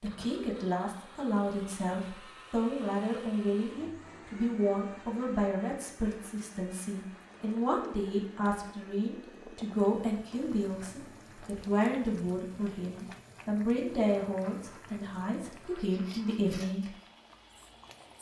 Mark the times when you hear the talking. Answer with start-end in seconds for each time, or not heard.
0.0-16.9.